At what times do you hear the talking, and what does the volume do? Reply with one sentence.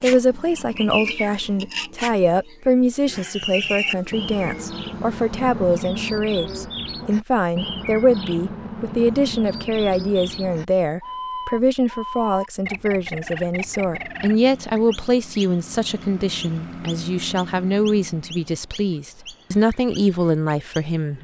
The talking can be heard from 0.0 to 21.1 s, at a steady volume.